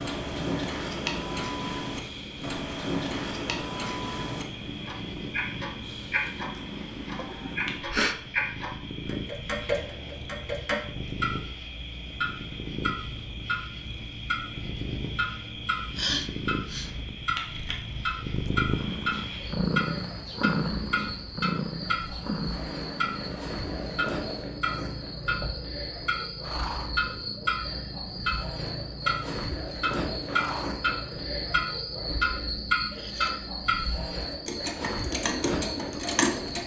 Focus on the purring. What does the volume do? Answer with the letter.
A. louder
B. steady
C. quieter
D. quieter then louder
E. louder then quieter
E.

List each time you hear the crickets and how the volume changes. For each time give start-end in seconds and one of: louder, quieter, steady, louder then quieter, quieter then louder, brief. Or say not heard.
0.0-36.6 louder.